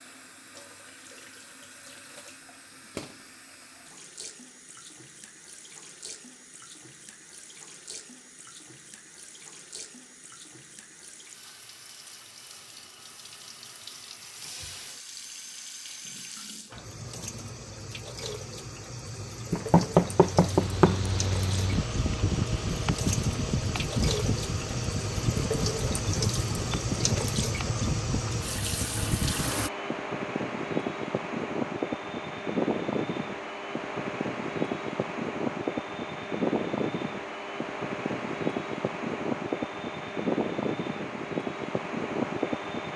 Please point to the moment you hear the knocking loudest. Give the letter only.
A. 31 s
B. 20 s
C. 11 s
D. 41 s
B.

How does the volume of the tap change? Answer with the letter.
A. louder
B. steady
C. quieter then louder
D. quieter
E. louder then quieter
A.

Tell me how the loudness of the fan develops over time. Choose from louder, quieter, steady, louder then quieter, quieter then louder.
steady.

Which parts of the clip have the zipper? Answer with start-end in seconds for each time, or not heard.
not heard.